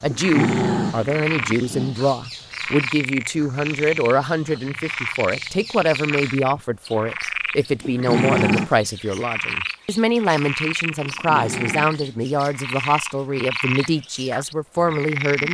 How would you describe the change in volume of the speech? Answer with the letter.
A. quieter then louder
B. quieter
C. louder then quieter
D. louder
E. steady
E.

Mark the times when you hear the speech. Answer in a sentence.
The speech can be heard from 0.0 to 15.4 s.